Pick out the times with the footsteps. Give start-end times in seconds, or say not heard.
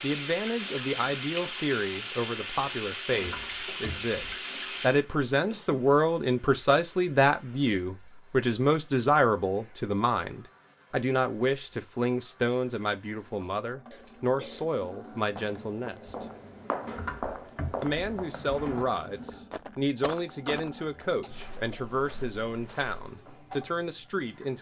15.2-23.1.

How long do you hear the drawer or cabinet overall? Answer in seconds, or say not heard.
3 s.